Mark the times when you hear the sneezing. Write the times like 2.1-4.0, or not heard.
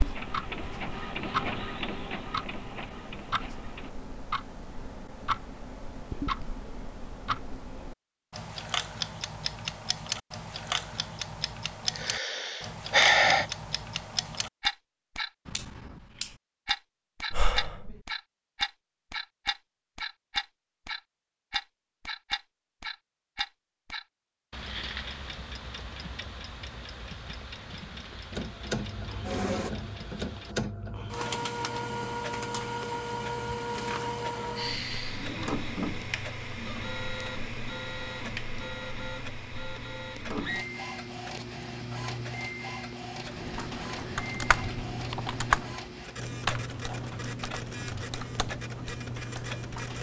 not heard.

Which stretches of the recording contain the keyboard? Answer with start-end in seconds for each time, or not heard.
43.2-49.9.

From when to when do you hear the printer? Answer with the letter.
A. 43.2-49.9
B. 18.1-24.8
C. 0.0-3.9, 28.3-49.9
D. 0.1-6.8
C.